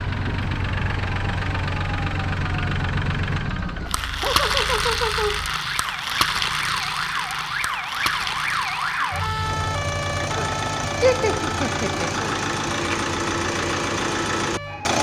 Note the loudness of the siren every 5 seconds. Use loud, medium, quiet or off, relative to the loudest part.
medium, loud, loud.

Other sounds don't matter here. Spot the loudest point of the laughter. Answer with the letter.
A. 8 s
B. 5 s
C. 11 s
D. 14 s
C.